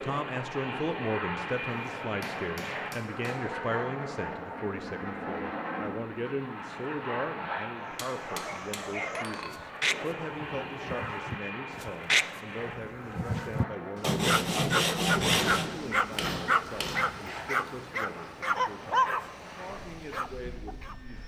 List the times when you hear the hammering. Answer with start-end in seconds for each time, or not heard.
1.6-3.5, 8.0-9.7, 15.3-17.1.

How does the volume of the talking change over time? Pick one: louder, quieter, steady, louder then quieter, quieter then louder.
quieter.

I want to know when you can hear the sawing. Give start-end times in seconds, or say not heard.
14.0-15.7.